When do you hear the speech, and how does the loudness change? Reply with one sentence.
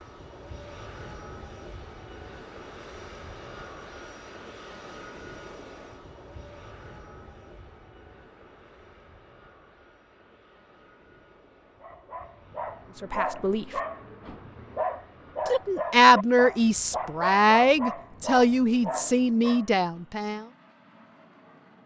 The speech can be heard briefly from 13.0 to 13.7 s; and from 15.4 to 20.4 s, getting quieter.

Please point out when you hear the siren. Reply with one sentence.
The siren can't be heard in this clip.